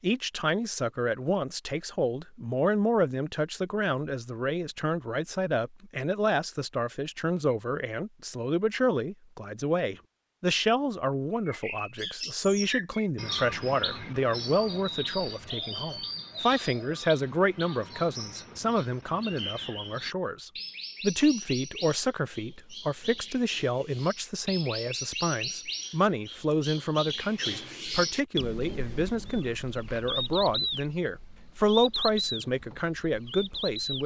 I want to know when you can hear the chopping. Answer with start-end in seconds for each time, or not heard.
not heard.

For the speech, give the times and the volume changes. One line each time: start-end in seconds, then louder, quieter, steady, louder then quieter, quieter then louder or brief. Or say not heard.
0.0-34.0 steady.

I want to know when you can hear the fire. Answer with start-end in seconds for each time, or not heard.
not heard.